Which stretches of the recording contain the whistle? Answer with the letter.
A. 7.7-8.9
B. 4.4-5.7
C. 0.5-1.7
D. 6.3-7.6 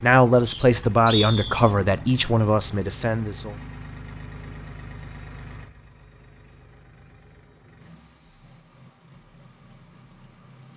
C.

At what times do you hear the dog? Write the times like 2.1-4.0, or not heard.
not heard.